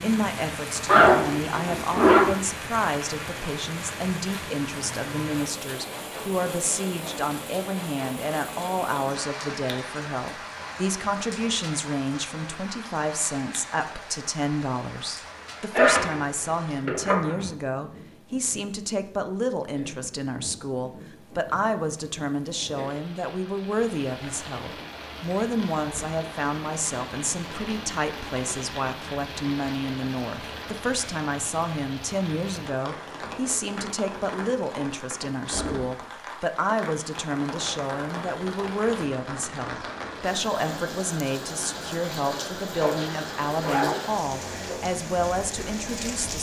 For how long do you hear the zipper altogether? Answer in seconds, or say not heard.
5 s.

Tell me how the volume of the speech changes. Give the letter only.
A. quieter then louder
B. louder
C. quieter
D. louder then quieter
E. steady
E.